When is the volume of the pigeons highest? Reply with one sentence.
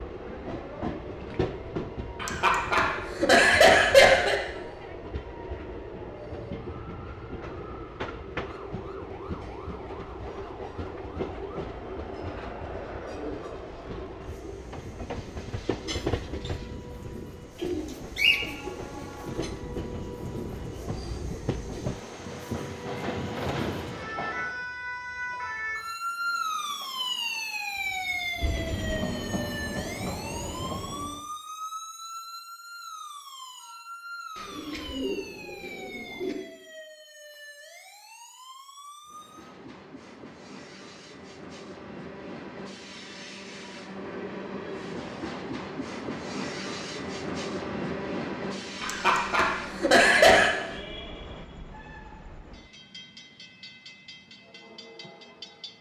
The loudest moment of the pigeons is at 18 seconds.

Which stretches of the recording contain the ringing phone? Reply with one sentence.
The ringing phone can't be heard in this clip.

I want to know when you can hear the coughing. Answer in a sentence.
You can hear the coughing from 2.2 to 4.3 s and from 48.8 to 50.5 s.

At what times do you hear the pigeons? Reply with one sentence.
The pigeons can be heard from 17.6 to 19.1 s and from 34.4 to 36.4 s.